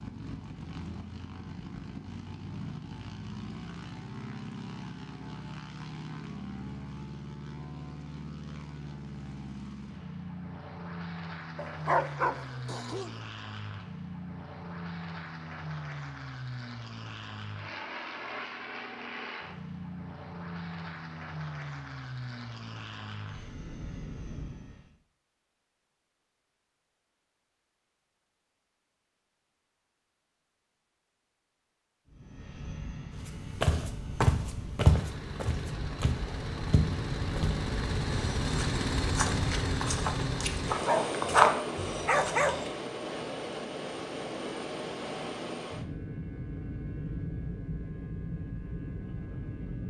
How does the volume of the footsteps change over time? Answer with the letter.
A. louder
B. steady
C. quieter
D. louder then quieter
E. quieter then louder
E.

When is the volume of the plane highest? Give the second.
39 s.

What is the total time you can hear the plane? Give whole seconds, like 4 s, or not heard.
43 s.